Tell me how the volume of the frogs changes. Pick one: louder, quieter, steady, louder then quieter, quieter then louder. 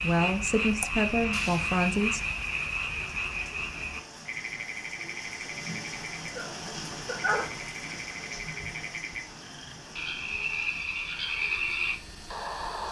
quieter then louder.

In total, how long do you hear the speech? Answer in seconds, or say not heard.
2 s.